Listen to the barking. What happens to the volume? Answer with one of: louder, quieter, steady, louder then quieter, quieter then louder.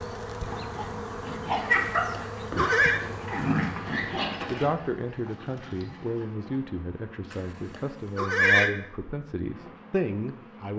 quieter.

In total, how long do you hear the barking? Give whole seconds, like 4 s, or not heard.
6 s.